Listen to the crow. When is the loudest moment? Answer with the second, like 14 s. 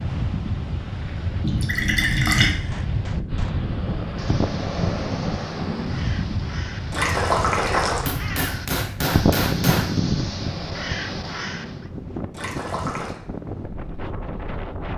9 s.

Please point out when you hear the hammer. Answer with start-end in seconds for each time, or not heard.
2.0-3.6, 8.1-9.9.